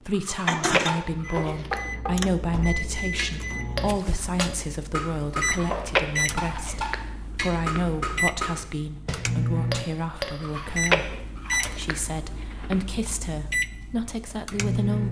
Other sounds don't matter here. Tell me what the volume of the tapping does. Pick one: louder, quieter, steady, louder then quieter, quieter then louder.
steady.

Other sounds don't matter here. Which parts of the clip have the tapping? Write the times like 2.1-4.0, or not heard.
0.8-10.3.